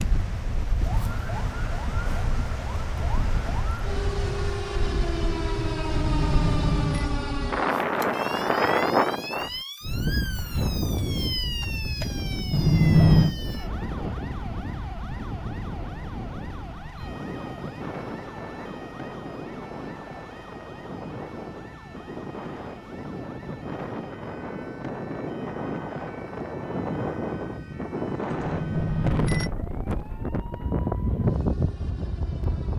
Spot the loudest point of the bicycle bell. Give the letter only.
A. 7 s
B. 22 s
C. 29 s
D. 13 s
D.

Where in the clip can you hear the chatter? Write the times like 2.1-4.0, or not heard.
not heard.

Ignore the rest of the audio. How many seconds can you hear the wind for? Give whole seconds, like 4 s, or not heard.
33 s.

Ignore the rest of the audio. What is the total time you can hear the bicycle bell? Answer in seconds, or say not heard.
3 s.